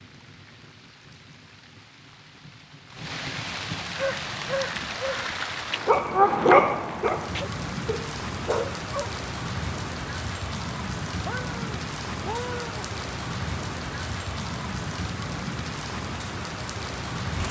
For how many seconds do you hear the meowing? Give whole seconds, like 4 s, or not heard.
2 s.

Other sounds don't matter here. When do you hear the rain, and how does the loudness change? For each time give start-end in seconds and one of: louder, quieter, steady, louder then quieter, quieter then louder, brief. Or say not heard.
0.0-17.4 louder.